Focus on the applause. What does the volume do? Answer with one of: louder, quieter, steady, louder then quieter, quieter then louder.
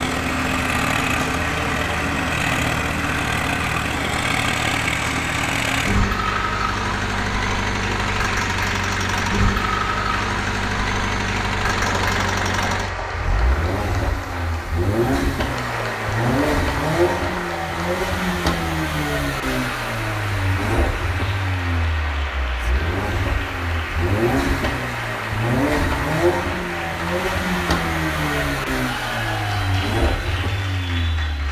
steady.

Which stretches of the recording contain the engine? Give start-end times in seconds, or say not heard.
0.0-31.4.